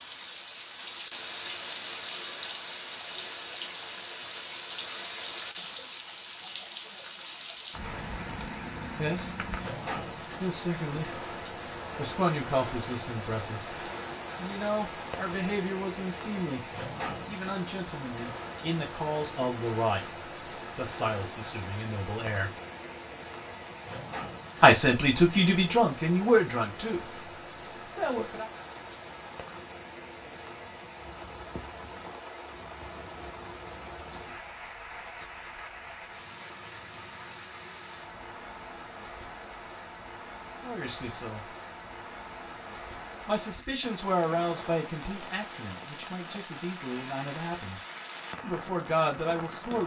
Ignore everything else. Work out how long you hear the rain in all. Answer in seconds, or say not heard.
50 s.